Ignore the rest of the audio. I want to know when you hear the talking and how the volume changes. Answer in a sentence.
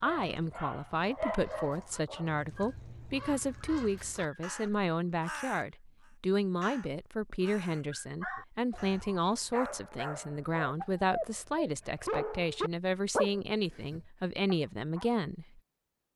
The talking can be heard from 0.0 to 15.6 s, at a steady volume.